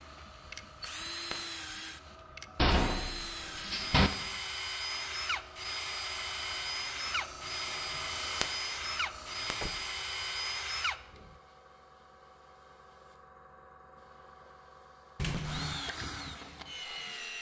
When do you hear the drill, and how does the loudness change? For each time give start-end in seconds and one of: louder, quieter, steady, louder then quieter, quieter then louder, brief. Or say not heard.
0.0-11.3 louder
15.4-17.3 brief.